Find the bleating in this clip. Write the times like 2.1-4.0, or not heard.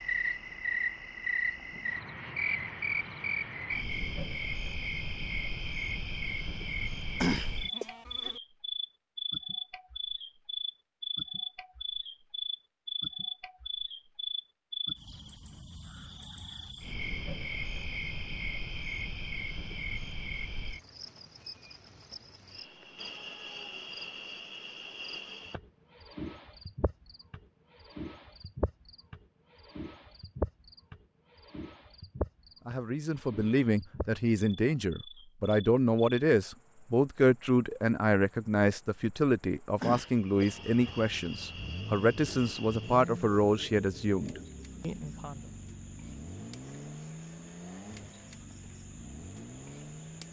7.2-8.4, 39.8-41.0.